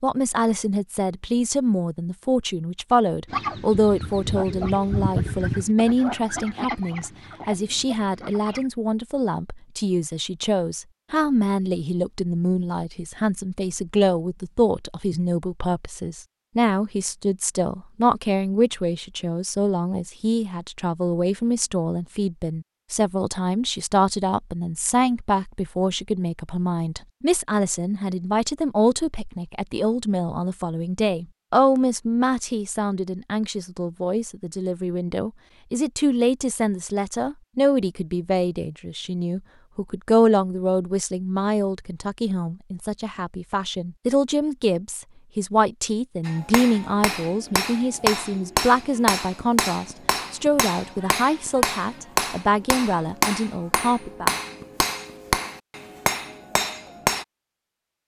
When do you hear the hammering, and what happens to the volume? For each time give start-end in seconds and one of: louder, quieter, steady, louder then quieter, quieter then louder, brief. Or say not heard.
46.2-57.2 steady.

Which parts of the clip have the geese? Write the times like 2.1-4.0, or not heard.
3.2-8.7.